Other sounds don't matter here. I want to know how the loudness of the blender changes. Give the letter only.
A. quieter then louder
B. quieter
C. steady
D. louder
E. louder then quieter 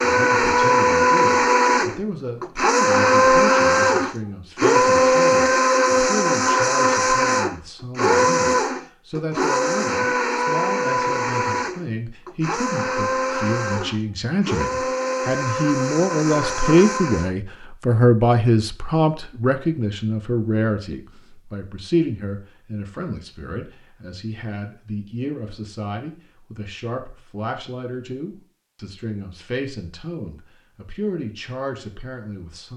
B.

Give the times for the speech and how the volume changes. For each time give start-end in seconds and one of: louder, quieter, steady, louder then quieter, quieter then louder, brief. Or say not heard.
0.0-32.7 louder then quieter.